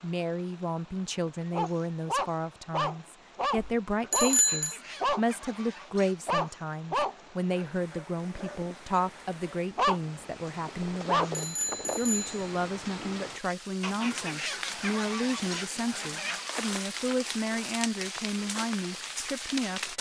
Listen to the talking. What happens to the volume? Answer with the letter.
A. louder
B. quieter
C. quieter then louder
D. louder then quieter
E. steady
E.